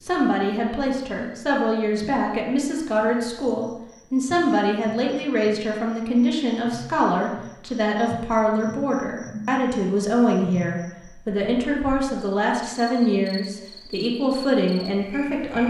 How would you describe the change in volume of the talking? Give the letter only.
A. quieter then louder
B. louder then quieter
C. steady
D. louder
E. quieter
C.